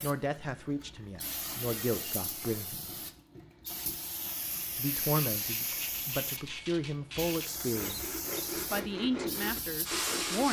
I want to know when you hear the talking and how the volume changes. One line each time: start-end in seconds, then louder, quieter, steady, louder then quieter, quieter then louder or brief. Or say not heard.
0.0-2.9 brief
4.8-10.4 steady.